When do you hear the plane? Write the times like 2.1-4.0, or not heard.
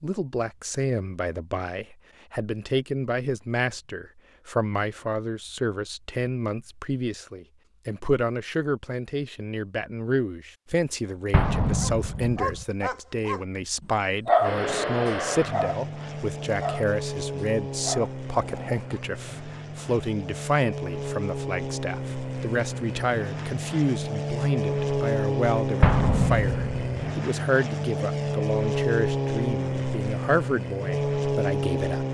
14.4-32.0.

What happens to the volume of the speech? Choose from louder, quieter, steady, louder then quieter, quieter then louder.
steady.